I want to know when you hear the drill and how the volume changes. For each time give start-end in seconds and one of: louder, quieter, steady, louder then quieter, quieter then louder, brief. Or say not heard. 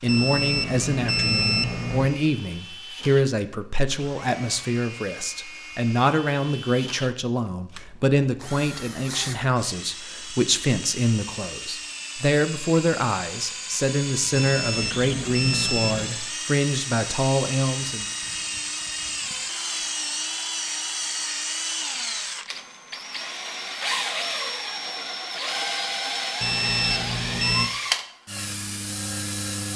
0.0-29.7 louder.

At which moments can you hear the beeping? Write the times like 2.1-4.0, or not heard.
0.1-2.1, 14.3-16.1, 26.4-27.7.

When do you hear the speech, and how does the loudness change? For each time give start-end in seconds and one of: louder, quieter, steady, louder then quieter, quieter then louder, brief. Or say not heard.
0.0-18.1 steady.